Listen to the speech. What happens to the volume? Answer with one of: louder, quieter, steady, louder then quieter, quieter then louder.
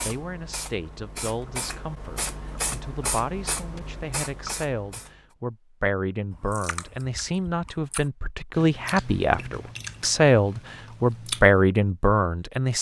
louder.